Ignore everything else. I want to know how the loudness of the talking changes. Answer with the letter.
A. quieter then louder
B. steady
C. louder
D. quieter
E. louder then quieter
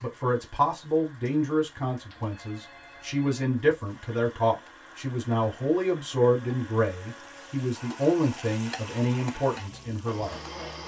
B.